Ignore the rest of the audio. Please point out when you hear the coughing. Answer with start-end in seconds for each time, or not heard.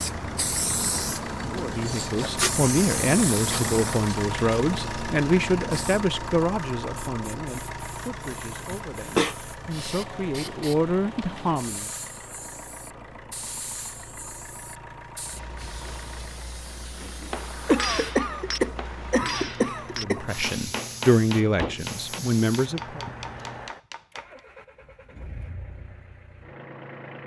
8.7-9.3, 17.6-20.2.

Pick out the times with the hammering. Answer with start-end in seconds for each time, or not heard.
17.0-24.4.